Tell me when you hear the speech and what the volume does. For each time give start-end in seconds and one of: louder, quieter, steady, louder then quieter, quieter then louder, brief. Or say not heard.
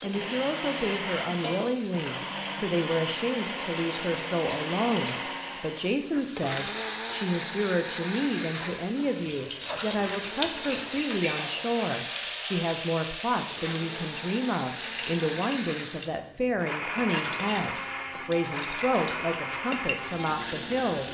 0.0-21.1 steady.